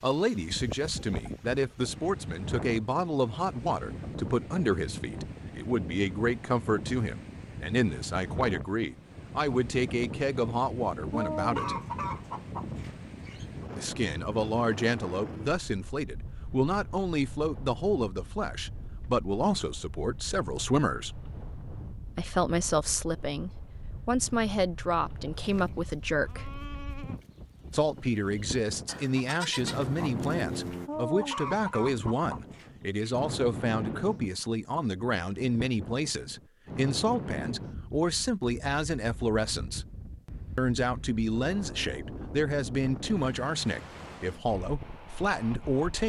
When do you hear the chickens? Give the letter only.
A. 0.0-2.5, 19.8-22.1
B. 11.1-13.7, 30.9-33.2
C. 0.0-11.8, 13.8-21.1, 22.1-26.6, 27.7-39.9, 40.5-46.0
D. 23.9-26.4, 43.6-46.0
B.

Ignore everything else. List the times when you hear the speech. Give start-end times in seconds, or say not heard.
0.0-11.8, 13.8-21.1, 22.1-26.6, 27.7-39.9, 40.5-46.0.